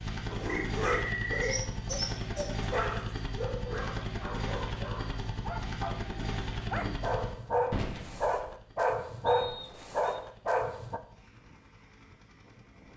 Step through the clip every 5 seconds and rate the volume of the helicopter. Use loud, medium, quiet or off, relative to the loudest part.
loud, loud, quiet.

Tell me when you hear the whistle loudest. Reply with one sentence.
The loudest moment of the whistle is at 1 second.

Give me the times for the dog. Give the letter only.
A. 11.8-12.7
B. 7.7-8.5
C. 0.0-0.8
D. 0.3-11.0
D.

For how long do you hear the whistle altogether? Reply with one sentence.
You can hear the whistle for 2 seconds altogether.